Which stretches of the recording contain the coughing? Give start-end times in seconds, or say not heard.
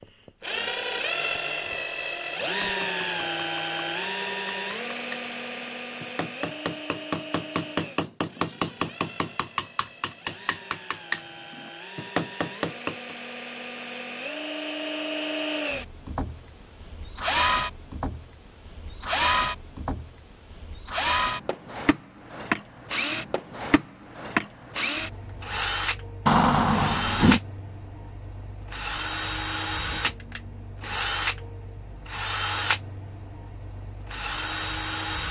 not heard.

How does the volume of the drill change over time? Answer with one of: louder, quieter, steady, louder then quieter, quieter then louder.
quieter then louder.